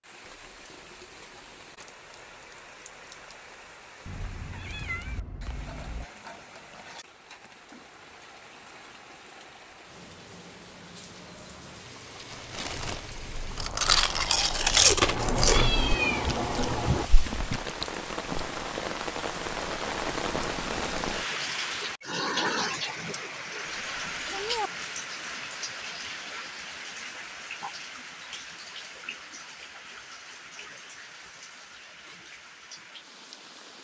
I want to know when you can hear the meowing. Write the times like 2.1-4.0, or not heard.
4.0-6.0, 15.1-17.1, 23.6-24.7.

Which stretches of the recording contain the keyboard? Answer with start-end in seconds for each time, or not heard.
not heard.